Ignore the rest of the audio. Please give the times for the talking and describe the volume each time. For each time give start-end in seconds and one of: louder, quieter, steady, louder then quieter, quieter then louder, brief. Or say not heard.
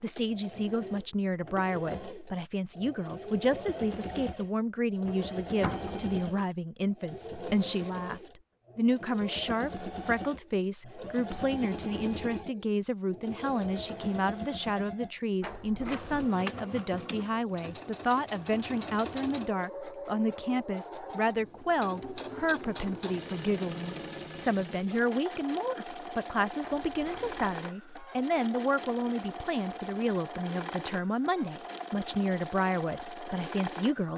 0.0-34.1 steady.